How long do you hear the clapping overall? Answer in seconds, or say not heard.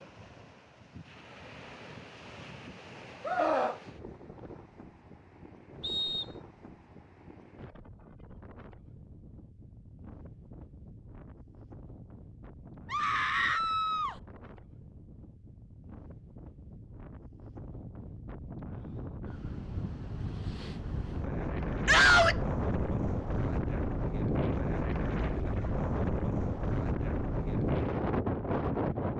not heard.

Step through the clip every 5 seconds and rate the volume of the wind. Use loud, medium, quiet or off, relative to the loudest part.
quiet, quiet, quiet, quiet, loud, loud.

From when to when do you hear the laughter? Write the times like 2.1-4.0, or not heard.
not heard.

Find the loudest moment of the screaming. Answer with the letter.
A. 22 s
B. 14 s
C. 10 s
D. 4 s
A.